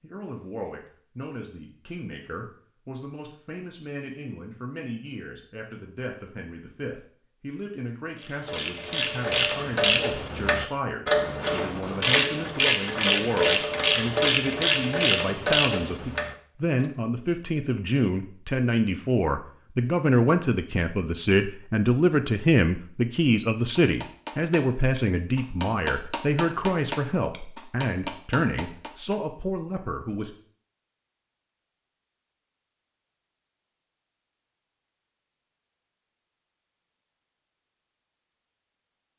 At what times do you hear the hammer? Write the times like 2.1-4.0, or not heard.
23.8-29.2.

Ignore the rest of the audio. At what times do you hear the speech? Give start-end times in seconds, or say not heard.
0.0-30.4.